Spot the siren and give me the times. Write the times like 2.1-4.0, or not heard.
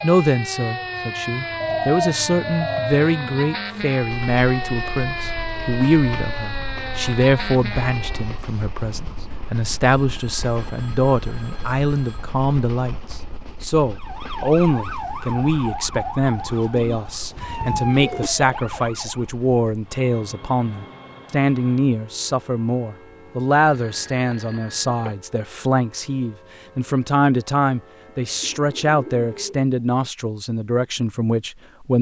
0.0-8.4, 13.9-19.3.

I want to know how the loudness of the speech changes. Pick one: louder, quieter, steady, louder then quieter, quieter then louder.
steady.